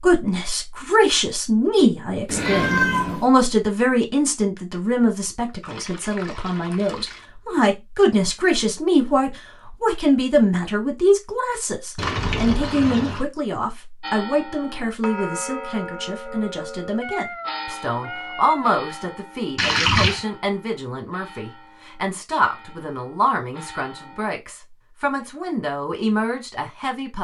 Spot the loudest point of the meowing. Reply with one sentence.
The volume of the meowing peaks at 3 seconds.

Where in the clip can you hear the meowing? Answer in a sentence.
You can hear the meowing from 2.2 to 3.2 s and from 17.0 to 18.8 s.